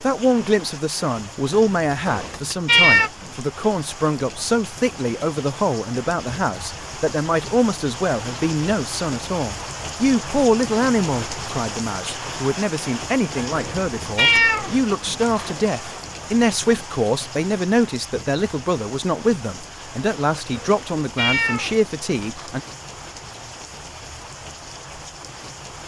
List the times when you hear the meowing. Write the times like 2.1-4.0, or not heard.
2.0-3.1, 13.6-15.5, 20.6-22.5.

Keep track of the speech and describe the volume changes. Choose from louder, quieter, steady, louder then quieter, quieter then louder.
steady.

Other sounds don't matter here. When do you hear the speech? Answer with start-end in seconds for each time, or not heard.
0.0-22.6.